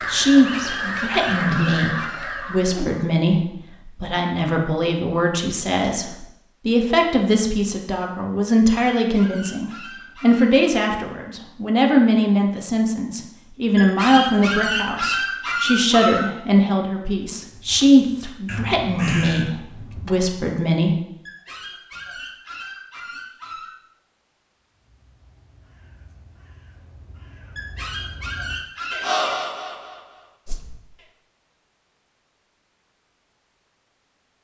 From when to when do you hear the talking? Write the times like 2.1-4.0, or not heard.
0.1-20.9.